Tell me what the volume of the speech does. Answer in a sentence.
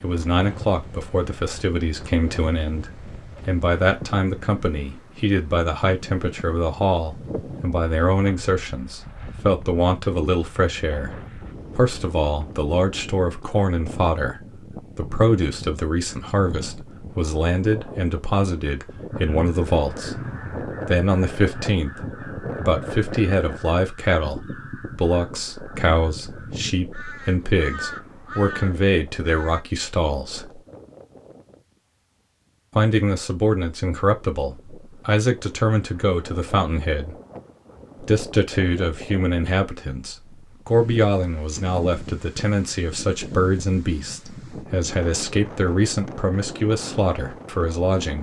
The volume of the speech stays about the same.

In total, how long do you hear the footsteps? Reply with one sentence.
The footsteps can't be heard in this clip.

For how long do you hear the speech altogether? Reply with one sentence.
You can hear the speech for 45 seconds altogether.